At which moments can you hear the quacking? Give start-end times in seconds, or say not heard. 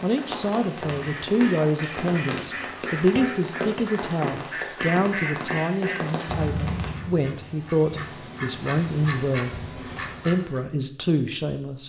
0.8-10.6.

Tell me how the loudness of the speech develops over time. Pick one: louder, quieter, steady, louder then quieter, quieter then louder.
steady.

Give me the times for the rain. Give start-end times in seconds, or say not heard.
0.0-7.0.